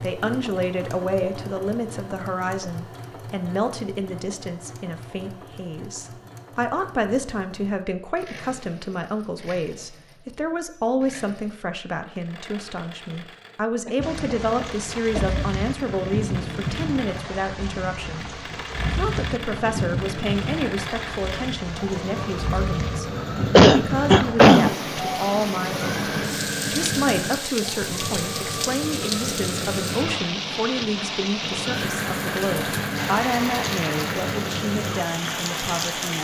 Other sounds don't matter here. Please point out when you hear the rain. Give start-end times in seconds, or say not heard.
14.0-36.2.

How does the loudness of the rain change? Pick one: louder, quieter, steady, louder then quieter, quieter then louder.
steady.